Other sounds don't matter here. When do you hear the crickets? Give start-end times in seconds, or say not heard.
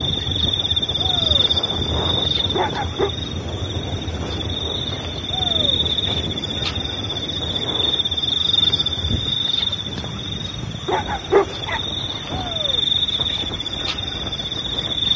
0.0-15.1.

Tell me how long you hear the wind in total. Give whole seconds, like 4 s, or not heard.
15 s.